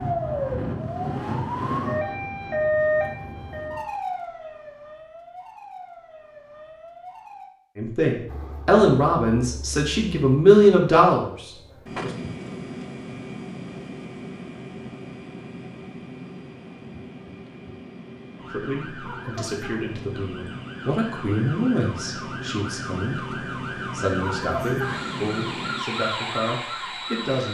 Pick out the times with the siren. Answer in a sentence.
You can hear the siren from 0.0 to 7.5 s and from 18.4 to 27.4 s.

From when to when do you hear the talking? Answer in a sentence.
The talking can be heard from 7.8 to 12.1 s and from 18.5 to 27.4 s.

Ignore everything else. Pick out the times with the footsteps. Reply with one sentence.
You can't hear the footsteps here.